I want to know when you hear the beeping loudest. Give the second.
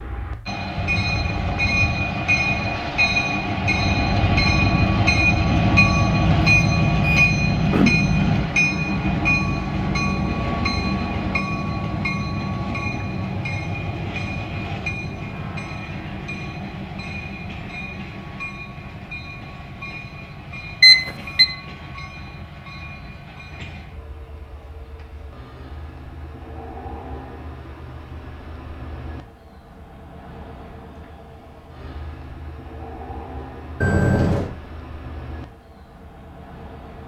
21 s.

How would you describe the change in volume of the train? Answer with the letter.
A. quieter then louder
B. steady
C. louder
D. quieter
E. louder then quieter
D.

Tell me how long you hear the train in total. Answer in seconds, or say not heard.
37 s.